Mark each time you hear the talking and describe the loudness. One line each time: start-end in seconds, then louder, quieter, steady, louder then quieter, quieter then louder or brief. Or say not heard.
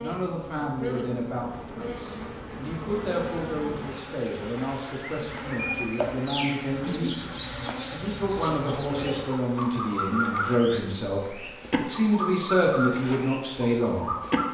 0.0-14.2 louder.